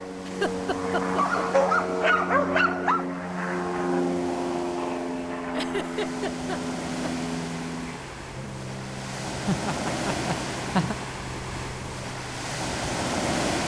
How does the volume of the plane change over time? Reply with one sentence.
The loudness of the plane goes down.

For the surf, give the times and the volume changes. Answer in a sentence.
The surf can be heard from 0.0 to 13.6 s, getting louder.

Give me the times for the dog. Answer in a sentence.
You can hear the dog from 1.1 to 3.0 s.